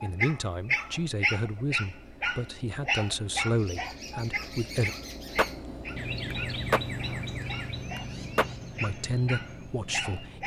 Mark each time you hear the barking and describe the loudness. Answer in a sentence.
The barking can be heard from 0.0 to 10.4 s, getting quieter then louder.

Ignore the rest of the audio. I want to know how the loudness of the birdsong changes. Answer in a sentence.
The loudness of the birdsong goes up, then down.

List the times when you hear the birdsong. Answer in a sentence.
The birdsong can be heard from 3.5 to 10.4 s.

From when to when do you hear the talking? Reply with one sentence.
You can hear the talking from 0.0 to 4.9 s and from 8.8 to 10.4 s.